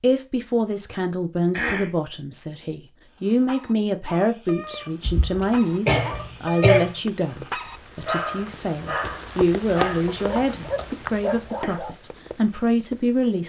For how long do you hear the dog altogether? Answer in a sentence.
The dog can be heard for 9 seconds in total.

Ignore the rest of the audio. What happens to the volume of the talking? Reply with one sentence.
The volume of the talking stays about the same.